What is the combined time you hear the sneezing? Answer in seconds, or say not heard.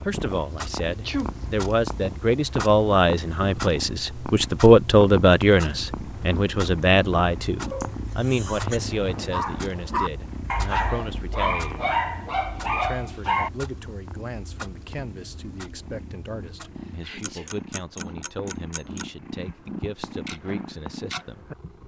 3 s.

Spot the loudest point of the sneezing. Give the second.
1 s.